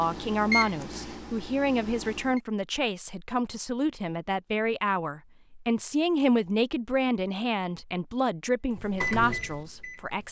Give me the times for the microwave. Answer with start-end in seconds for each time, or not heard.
0.0-2.4, 8.7-10.2.